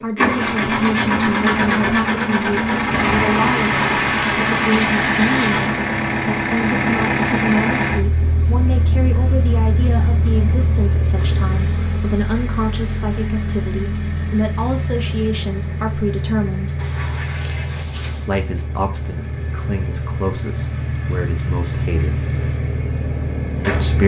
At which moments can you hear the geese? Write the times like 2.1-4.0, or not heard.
3.6-5.8, 16.8-18.3.